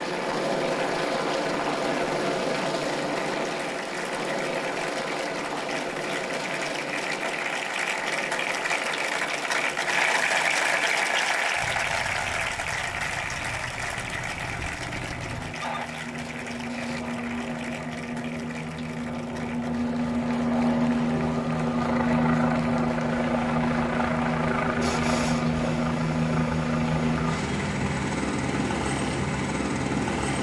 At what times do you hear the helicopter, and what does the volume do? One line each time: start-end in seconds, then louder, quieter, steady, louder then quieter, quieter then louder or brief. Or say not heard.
0.0-30.3 quieter then louder.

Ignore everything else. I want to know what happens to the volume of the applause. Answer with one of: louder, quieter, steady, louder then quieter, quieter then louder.
louder then quieter.